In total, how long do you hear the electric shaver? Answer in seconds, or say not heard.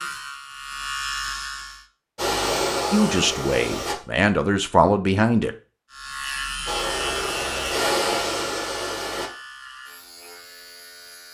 7 s.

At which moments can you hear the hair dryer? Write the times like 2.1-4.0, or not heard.
2.1-4.0, 6.7-9.3.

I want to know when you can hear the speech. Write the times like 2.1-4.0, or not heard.
2.9-5.5.